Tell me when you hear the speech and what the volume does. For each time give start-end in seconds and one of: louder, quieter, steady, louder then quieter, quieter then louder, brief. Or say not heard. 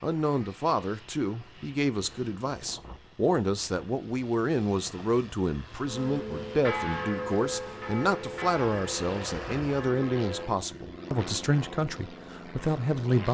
0.0-13.2 steady.